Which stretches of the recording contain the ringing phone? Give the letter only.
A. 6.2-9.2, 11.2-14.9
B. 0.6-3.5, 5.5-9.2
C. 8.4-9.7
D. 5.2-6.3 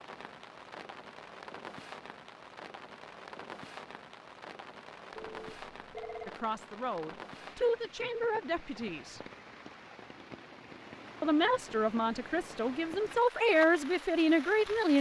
D.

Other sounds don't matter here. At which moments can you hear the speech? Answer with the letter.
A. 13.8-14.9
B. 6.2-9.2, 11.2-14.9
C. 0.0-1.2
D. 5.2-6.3
B.